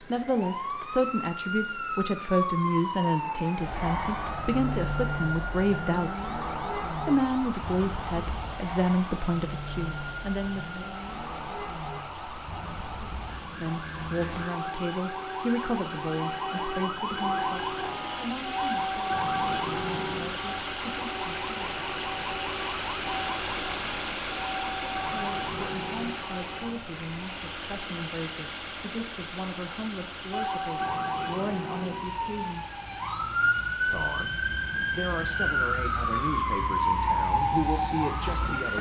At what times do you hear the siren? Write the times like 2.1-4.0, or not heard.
0.1-26.8, 30.3-38.7.